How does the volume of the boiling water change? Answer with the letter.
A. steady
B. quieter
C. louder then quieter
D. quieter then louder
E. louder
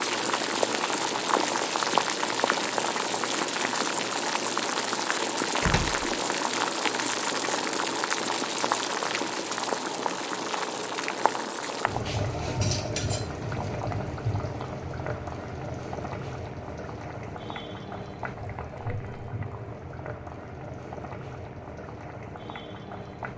B.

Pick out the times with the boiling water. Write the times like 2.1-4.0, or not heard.
0.0-23.3.